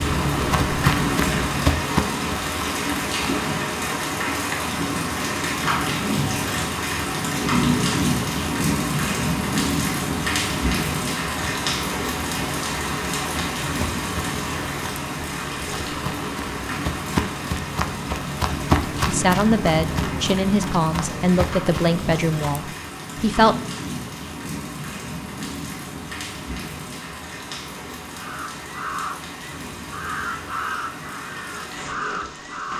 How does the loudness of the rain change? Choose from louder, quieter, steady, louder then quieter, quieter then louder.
quieter.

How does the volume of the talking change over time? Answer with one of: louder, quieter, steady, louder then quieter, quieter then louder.
quieter.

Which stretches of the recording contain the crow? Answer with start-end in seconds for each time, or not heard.
28.1-32.7.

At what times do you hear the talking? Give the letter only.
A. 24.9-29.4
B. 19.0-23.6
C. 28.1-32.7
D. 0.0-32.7
B.